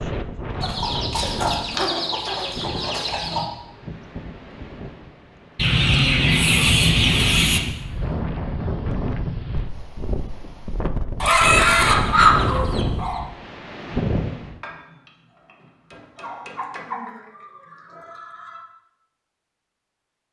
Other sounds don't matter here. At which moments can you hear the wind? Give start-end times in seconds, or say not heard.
0.0-14.6.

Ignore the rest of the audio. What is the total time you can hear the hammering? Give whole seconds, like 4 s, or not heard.
2 s.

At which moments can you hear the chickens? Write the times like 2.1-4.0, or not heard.
0.6-3.5, 5.5-7.6, 11.2-13.2, 16.1-18.6.